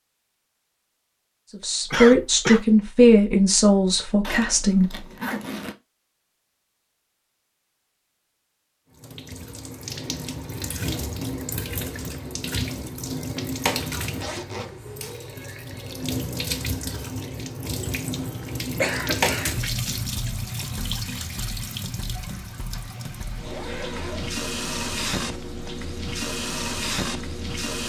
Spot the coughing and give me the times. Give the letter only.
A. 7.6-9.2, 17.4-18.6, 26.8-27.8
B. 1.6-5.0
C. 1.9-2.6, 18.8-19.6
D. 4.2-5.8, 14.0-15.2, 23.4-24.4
C.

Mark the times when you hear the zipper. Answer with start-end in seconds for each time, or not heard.
4.2-5.8, 14.0-15.2, 23.4-24.4.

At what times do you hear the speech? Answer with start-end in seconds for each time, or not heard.
1.6-5.0.